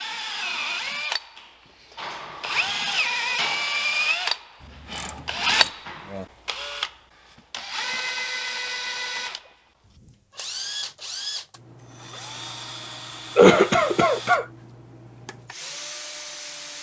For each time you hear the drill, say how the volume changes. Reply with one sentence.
You can hear the drill from 0.0 to 16.7 s, getting quieter.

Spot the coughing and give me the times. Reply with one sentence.
You can hear the coughing from 13.3 to 14.4 s.